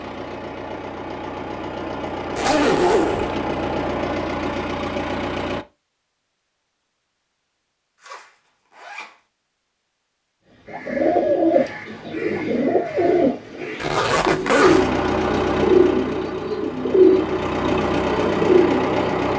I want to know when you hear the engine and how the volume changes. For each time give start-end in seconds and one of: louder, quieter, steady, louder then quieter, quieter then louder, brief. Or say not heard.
0.0-5.7 louder
14.6-19.3 quieter then louder.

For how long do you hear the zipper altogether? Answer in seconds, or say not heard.
3 s.